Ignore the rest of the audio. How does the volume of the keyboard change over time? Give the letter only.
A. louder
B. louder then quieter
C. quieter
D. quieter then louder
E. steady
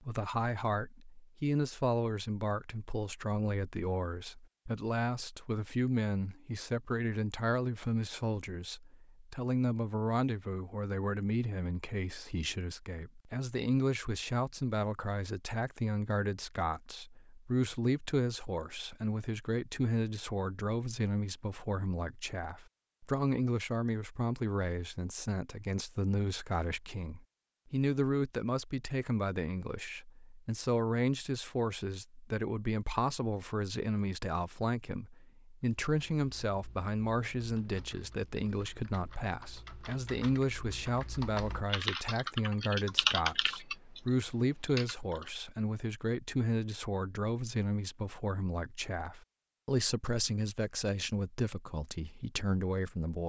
B.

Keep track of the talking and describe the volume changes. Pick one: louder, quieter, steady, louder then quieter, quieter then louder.
steady.